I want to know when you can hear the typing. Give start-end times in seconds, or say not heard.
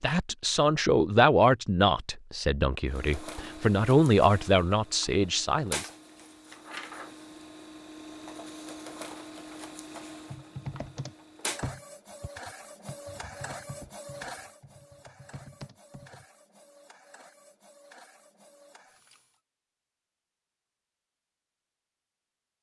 10.2-16.2.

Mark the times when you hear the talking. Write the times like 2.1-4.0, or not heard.
0.0-5.9.